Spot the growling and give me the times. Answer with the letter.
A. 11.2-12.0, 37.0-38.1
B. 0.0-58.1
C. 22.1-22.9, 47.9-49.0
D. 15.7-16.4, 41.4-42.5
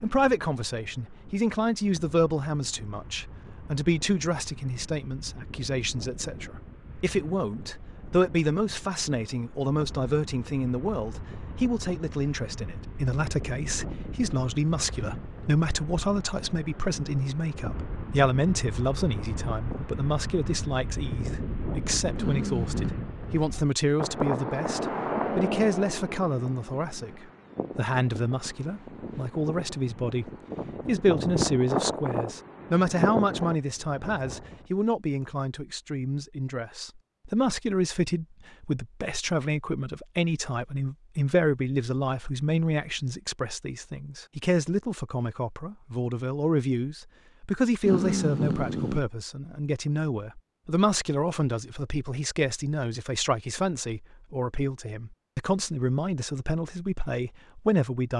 C.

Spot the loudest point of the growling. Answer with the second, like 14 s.
48 s.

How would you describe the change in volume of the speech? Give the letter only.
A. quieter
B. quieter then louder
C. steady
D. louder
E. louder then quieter
C.